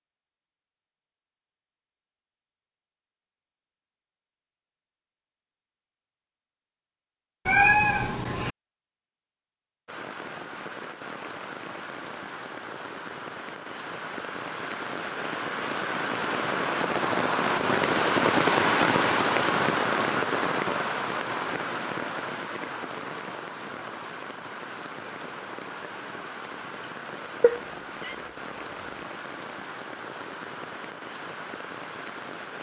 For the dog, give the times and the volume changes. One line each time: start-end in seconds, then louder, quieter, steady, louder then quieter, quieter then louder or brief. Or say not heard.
not heard.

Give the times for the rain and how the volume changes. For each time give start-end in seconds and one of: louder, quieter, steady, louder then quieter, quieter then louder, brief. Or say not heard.
9.8-32.5 louder then quieter.